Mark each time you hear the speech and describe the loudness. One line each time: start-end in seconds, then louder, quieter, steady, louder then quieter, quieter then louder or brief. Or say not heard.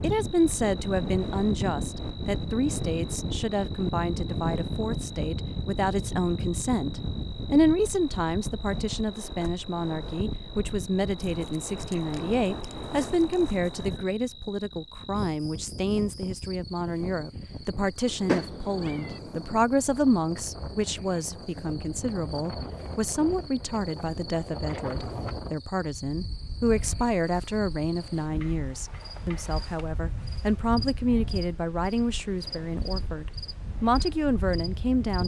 0.0-35.2 steady.